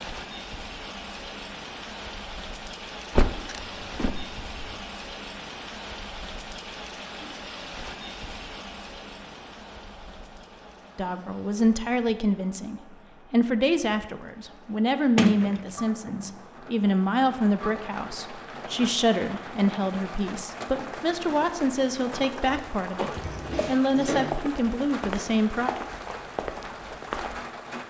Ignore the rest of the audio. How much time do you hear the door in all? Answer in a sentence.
The door can be heard for 4 seconds in total.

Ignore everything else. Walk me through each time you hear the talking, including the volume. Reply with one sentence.
The talking can be heard from 10.9 to 25.7 s, at a steady volume.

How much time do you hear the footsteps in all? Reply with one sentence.
You can hear the footsteps for 4 seconds altogether.